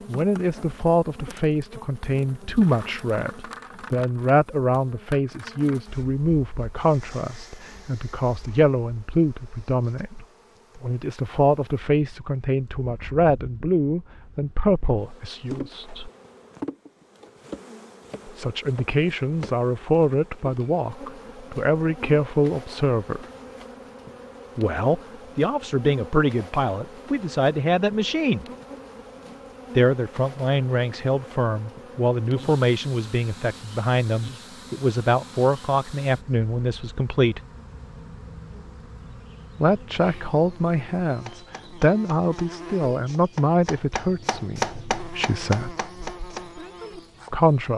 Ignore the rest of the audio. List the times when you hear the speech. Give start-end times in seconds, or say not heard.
0.1-16.1, 18.2-23.2, 24.6-28.4, 29.8-37.4, 39.5-45.8, 47.3-47.7.